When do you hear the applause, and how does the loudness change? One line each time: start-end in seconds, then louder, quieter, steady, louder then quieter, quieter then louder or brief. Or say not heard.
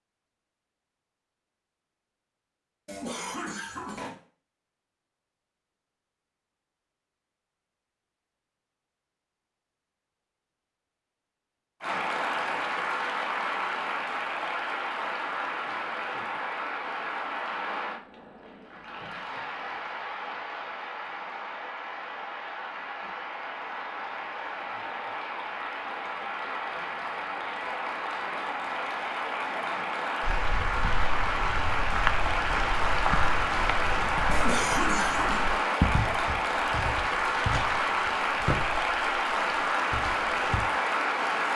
11.8-41.5 quieter then louder.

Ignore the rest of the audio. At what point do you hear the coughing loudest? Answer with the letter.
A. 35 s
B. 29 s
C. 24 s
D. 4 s
A.